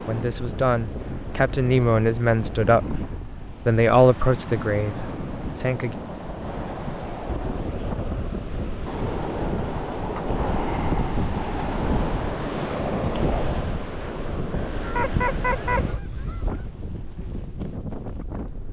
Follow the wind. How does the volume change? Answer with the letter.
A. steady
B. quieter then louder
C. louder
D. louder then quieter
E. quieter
D.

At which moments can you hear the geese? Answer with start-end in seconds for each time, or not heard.
14.8-16.7.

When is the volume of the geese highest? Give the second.
15 s.